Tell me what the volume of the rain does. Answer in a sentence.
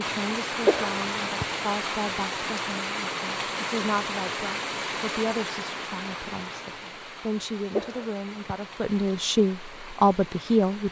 The loudness of the rain goes down.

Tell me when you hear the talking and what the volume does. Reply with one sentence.
You can hear the talking from 0.0 to 10.8 s, getting louder.